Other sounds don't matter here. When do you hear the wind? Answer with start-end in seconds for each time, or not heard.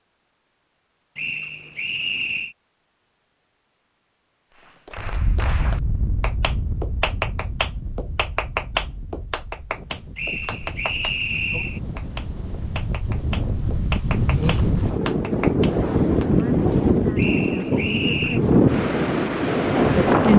5.0-20.3.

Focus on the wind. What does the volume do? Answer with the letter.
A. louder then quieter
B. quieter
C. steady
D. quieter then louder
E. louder
D.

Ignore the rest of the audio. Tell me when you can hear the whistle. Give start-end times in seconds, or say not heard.
1.1-2.5, 10.2-11.8, 17.1-18.4.